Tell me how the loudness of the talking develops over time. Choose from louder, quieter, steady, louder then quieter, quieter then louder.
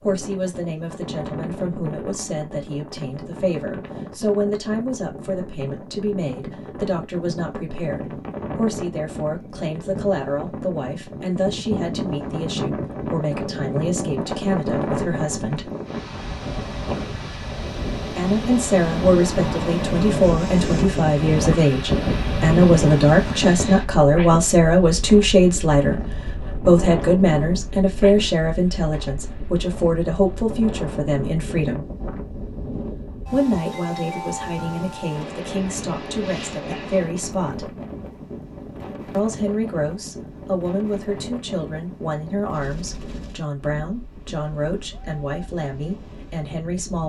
louder then quieter.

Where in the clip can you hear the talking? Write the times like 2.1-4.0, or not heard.
0.0-15.7, 18.1-31.9, 33.3-37.8, 39.1-47.0.